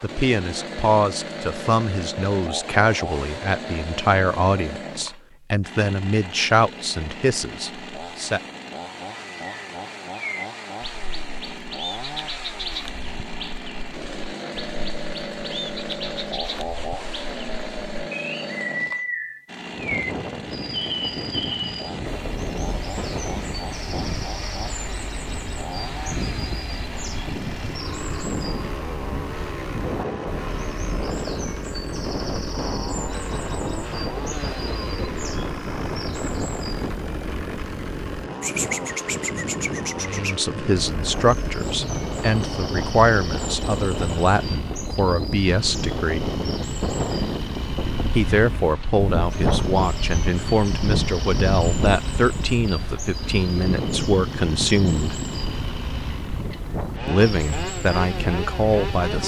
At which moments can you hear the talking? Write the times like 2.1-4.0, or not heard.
0.0-8.4, 40.0-46.3, 48.1-55.1, 57.0-59.2.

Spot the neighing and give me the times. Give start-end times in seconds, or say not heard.
not heard.